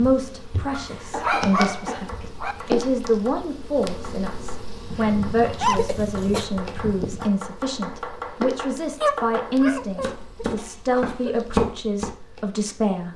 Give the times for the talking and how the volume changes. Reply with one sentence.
You can hear the talking from 0.0 to 13.1 s, at a steady volume.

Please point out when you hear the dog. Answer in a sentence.
The dog can be heard from 0.7 to 2.5 s, from 4.9 to 7.3 s and from 9.0 to 10.2 s.